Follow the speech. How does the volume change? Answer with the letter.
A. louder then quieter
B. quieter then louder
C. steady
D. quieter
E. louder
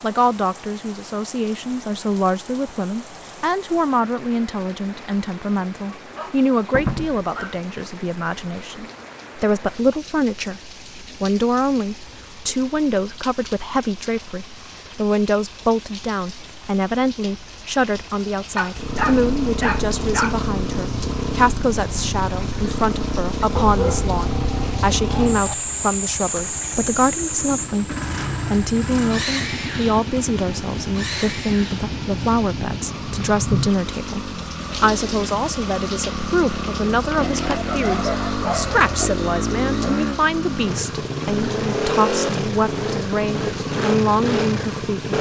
C.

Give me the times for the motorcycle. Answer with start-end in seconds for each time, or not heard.
18.7-45.1.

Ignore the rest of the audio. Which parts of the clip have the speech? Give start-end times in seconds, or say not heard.
0.0-45.1.